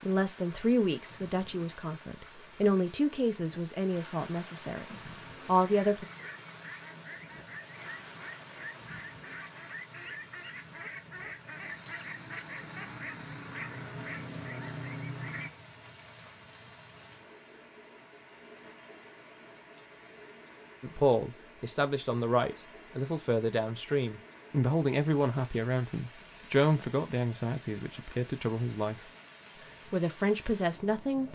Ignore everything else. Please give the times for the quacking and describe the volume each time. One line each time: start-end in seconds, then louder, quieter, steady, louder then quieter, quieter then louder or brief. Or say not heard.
5.5-15.5 louder.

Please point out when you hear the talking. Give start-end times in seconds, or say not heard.
0.0-6.0, 20.8-29.0, 29.9-31.3.